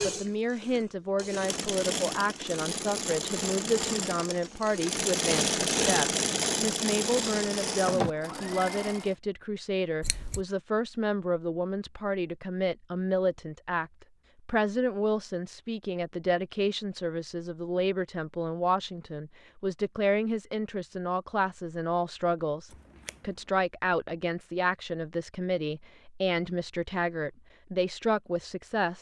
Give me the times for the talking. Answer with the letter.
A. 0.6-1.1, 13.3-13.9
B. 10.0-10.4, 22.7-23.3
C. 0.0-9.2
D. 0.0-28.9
D.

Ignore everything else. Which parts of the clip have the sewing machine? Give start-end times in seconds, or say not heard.
0.0-9.2.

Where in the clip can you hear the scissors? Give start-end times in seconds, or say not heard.
10.0-10.4, 22.7-23.3.